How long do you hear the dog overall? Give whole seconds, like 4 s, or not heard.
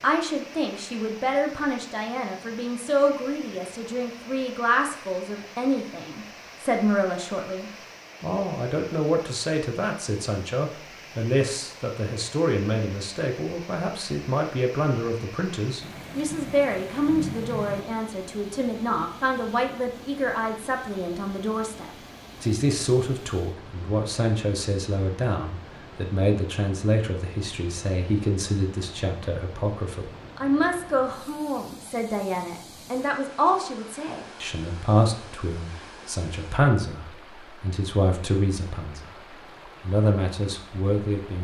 not heard.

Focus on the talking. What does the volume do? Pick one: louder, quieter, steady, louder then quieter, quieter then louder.
steady.